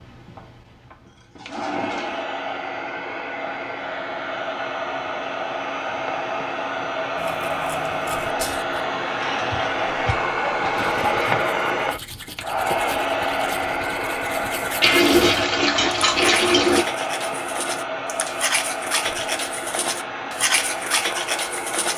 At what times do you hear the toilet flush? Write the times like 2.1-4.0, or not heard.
1.1-2.2, 9.2-11.4, 14.8-16.9.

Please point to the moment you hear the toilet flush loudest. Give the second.
15 s.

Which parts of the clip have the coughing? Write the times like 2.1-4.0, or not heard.
not heard.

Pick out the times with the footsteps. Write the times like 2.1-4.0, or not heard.
not heard.